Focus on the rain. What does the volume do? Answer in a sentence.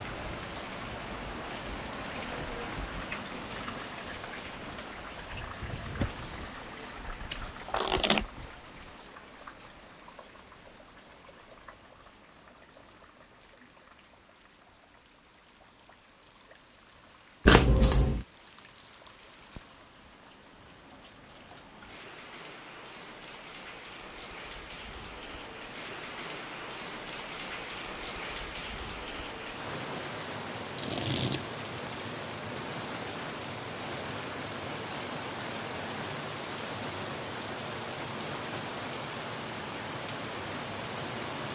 The volume of the rain goes down, then up.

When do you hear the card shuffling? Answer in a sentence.
You can hear the card shuffling from 7.7 to 8.2 s, from 17.4 to 18.2 s and from 30.8 to 31.4 s.